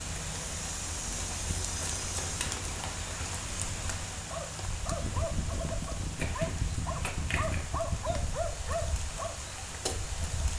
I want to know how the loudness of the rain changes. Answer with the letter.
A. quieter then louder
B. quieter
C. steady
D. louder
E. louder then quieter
C.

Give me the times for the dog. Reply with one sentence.
You can hear the dog from 4.2 to 9.3 s.